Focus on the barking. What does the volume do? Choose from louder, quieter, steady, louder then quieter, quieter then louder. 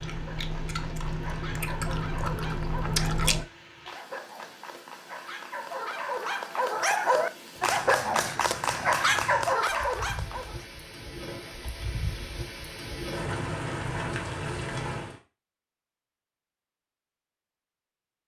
louder.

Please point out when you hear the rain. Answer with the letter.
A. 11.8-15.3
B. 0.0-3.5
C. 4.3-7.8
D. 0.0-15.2
D.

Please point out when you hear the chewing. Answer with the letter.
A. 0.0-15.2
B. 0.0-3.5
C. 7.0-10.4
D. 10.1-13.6
B.